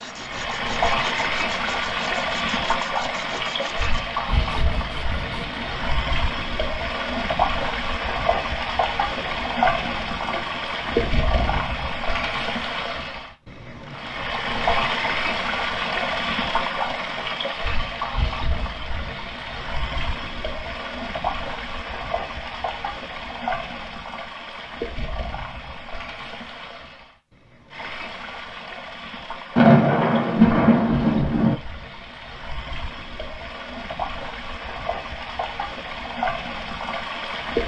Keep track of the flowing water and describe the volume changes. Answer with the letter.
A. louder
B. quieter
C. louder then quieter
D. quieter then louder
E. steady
B.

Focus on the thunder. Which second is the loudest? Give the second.
30 s.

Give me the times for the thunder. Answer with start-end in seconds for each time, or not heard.
9.2-11.6, 29.6-31.6.